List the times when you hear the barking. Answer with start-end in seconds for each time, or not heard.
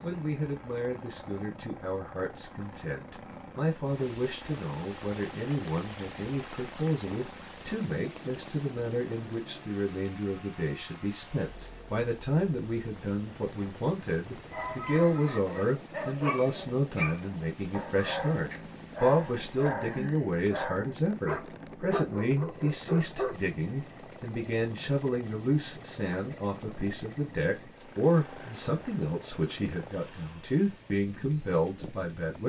14.5-23.4.